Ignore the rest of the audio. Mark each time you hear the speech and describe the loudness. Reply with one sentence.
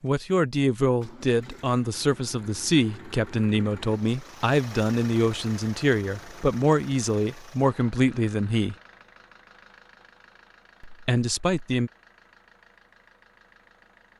The speech can be heard from 0.0 to 8.8 s, at a steady volume; and briefly from 10.8 to 11.9 s.